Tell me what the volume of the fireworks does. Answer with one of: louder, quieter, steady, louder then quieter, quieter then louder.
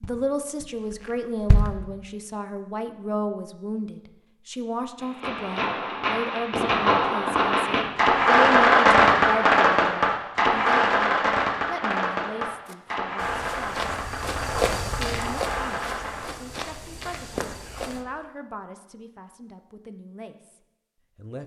louder then quieter.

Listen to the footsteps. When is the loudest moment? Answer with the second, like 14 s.
15 s.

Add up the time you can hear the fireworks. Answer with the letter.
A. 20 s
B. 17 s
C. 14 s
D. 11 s
D.